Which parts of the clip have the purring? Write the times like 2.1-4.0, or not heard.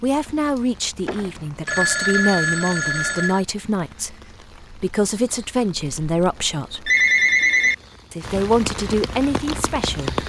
not heard.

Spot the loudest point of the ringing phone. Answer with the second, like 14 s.
7 s.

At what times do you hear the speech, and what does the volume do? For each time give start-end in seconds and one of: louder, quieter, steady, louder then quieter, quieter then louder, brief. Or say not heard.
0.0-6.9 steady
8.1-10.2 brief.